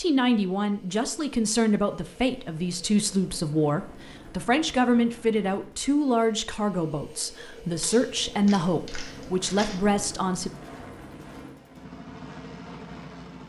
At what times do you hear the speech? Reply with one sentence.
You can hear the speech from 0.0 to 10.5 s.